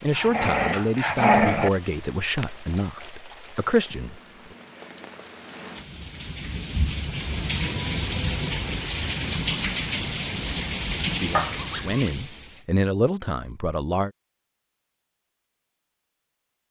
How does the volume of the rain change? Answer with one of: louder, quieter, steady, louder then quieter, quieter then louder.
louder.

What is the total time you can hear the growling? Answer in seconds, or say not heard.
2 s.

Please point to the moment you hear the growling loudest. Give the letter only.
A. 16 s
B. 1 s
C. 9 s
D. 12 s
B.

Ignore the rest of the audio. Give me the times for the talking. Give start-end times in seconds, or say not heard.
0.0-4.2, 11.1-14.1.